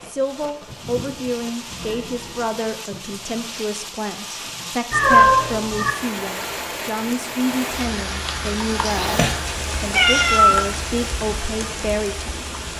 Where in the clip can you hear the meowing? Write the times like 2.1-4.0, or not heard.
0.7-2.5, 4.9-6.0, 8.9-11.1.